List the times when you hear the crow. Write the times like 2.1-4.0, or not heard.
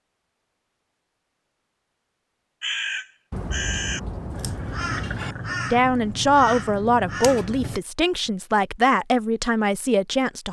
2.6-7.8.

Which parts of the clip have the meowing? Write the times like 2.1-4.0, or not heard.
not heard.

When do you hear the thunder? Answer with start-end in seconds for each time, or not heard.
3.3-5.3.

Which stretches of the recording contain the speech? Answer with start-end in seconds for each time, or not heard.
5.7-10.4.